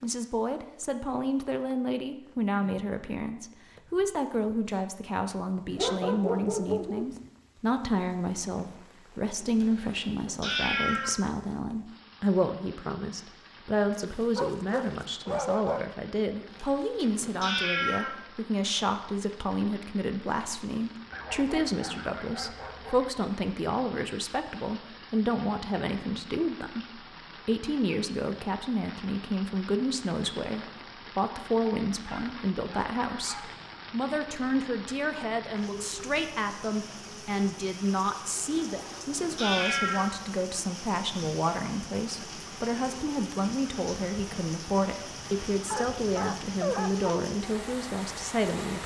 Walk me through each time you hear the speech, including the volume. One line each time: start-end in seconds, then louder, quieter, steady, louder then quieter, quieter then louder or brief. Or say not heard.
0.0-48.8 steady.